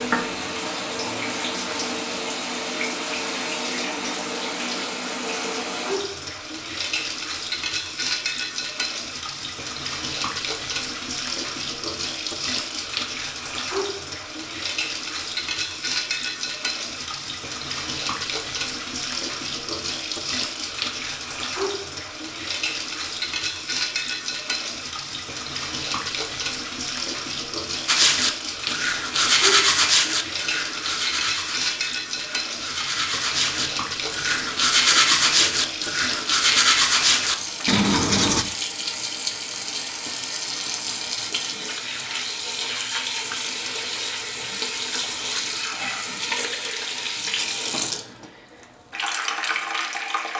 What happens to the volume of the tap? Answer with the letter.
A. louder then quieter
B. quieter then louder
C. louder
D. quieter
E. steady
E.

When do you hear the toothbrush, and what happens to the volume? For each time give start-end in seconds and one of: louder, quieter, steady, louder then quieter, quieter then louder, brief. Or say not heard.
27.9-38.5 quieter then louder.